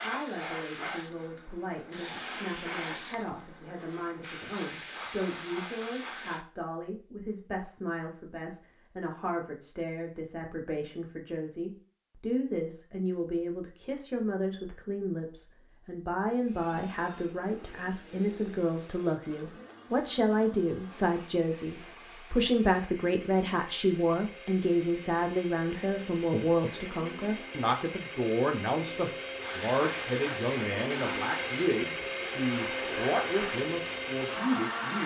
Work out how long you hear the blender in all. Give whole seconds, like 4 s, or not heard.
19 s.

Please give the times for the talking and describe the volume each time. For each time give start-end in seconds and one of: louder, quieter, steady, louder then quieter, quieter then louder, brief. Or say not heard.
0.0-35.0 louder.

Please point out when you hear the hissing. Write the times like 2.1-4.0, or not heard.
0.0-6.5, 29.4-35.0.